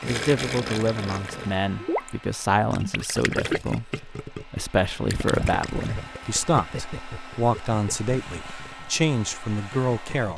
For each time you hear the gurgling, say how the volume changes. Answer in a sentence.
The gurgling can be heard briefly from 0.0 to 2.1 s; and from 2.7 to 10.3 s, getting quieter.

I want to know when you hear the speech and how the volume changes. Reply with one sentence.
The speech can be heard from 0.0 to 10.3 s, at a steady volume.